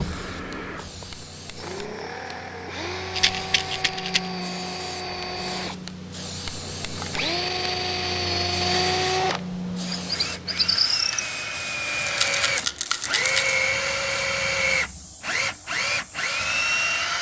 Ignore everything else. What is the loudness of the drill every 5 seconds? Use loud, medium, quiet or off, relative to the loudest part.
medium, loud, loud, loud.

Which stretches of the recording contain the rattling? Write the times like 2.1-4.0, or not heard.
3.1-4.3, 12.1-13.6.